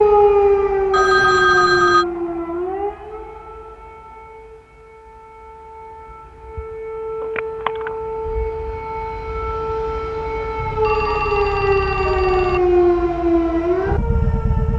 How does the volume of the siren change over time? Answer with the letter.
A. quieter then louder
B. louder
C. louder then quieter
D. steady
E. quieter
A.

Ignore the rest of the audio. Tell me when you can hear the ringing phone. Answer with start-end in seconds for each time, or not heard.
0.9-2.0, 7.2-7.9, 10.6-12.6.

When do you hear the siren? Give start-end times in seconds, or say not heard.
0.0-14.7.